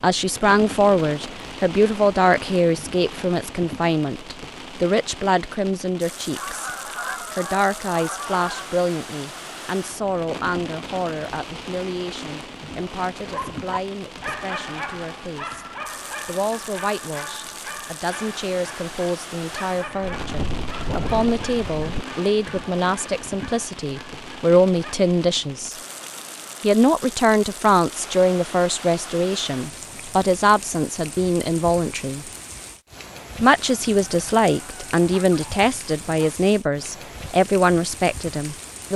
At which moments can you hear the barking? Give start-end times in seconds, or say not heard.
13.2-24.9.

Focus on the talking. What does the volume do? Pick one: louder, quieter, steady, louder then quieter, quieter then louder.
quieter then louder.